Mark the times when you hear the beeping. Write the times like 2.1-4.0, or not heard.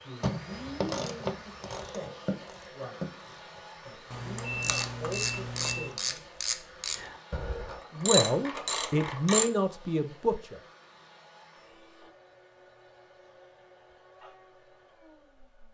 4.1-6.0.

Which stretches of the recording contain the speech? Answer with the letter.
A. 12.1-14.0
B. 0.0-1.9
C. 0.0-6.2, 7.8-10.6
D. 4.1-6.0
C.